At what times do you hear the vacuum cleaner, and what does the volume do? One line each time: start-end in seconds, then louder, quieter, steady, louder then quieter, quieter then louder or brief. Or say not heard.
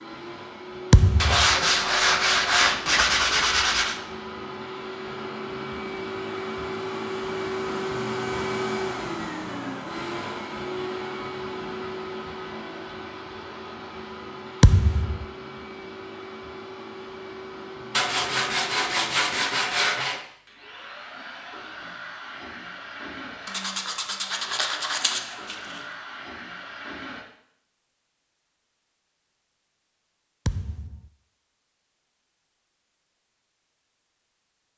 0.0-27.2 louder then quieter.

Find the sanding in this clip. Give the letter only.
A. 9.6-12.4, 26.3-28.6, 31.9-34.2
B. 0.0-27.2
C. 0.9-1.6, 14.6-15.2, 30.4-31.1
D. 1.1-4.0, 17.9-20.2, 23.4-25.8
D.